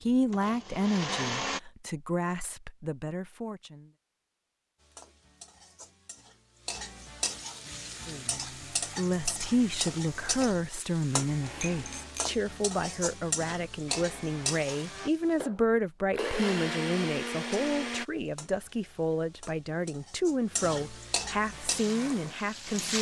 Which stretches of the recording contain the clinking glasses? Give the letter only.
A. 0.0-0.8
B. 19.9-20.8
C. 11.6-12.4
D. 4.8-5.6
C.